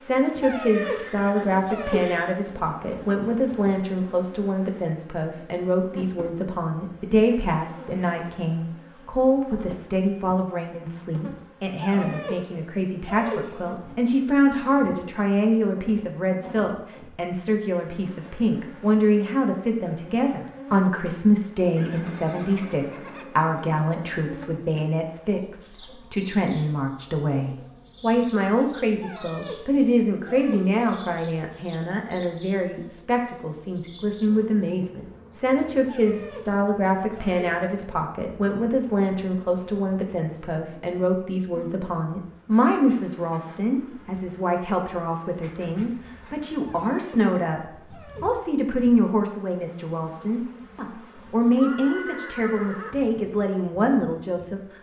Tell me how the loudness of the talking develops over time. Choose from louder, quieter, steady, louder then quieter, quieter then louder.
steady.